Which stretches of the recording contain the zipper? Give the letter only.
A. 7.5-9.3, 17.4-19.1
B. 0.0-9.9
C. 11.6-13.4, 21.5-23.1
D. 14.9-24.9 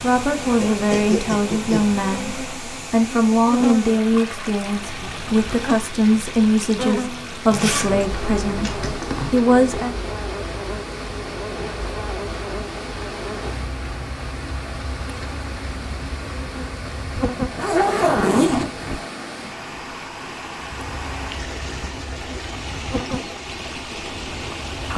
A.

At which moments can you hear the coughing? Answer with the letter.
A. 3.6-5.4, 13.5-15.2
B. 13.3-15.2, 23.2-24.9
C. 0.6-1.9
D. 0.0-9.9
C.